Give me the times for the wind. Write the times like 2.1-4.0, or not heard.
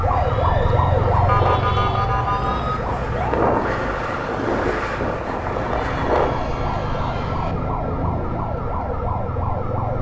0.0-6.5.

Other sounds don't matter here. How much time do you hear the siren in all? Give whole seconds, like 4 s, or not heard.
10 s.